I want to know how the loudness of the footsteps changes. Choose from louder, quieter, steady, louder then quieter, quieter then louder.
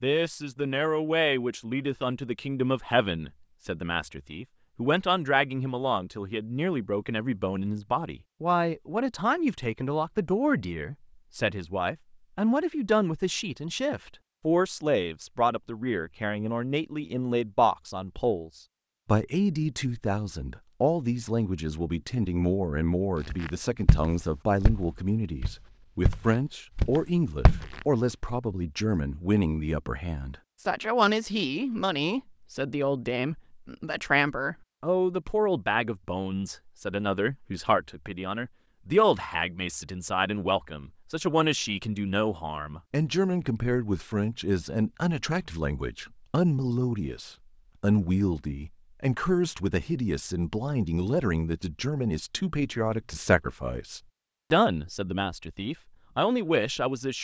quieter then louder.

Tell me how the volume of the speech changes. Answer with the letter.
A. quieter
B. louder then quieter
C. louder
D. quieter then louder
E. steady
E.